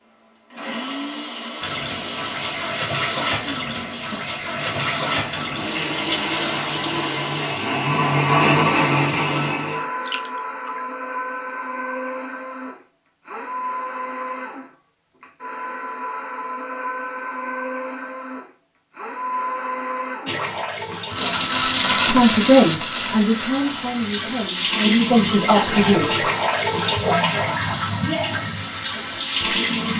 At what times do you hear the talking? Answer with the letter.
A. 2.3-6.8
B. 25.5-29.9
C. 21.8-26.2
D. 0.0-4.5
C.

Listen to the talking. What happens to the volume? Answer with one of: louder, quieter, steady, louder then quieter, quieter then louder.
quieter then louder.